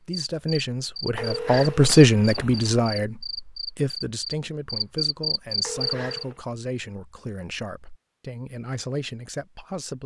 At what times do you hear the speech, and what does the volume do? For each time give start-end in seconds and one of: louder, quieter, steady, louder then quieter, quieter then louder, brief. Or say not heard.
0.0-10.0 quieter.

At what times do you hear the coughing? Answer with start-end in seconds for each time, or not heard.
not heard.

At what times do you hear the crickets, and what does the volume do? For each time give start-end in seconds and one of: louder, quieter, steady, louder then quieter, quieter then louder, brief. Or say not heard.
0.1-6.2 louder.